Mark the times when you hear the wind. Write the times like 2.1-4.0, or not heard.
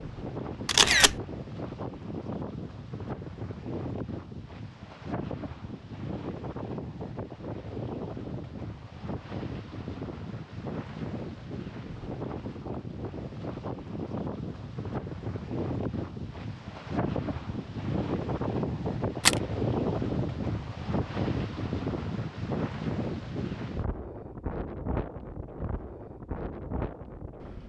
0.0-27.6.